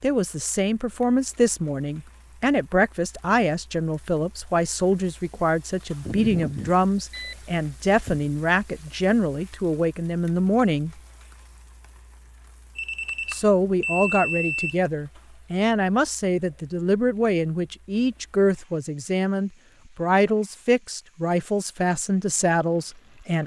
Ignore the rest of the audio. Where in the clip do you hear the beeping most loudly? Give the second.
14 s.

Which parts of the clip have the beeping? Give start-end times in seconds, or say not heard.
6.0-8.3, 12.8-14.8.